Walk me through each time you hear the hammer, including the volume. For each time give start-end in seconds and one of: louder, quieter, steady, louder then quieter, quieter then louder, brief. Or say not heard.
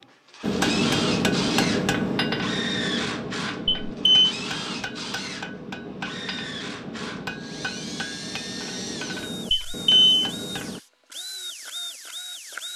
0.4-10.8 quieter.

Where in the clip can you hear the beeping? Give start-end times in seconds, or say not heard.
3.6-4.3, 9.5-10.2.